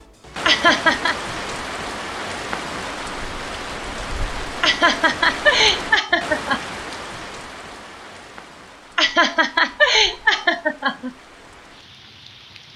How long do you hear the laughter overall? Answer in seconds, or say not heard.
5 s.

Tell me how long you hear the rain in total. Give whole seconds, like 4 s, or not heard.
13 s.